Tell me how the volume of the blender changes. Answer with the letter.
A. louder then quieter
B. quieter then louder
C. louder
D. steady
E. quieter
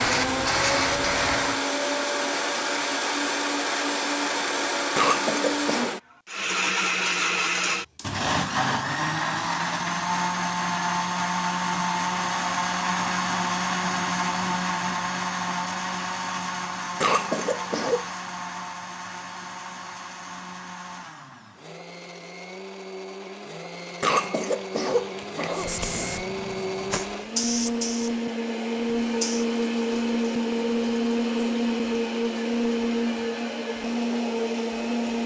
B.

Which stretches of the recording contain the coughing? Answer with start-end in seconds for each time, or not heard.
5.0-6.0, 17.0-18.1, 24.0-25.9.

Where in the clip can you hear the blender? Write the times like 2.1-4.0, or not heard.
0.0-35.2.